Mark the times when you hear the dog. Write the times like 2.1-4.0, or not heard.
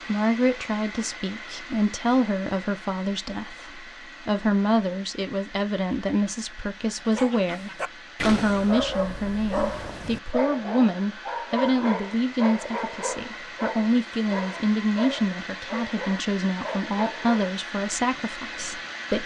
7.0-17.4.